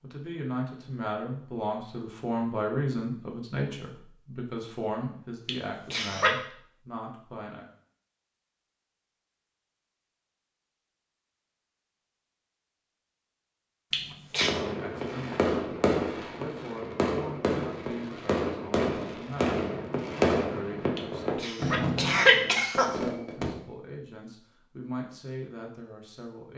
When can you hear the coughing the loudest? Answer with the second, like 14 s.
22 s.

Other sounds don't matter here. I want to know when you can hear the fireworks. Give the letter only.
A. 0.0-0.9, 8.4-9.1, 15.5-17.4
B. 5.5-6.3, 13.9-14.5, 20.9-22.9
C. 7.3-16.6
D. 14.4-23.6
D.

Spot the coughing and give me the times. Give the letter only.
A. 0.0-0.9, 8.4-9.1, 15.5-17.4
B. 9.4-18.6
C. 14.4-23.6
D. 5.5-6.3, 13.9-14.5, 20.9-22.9
D.